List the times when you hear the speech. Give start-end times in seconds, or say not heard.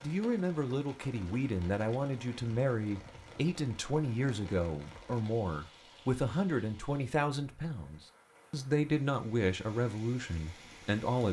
0.0-11.2.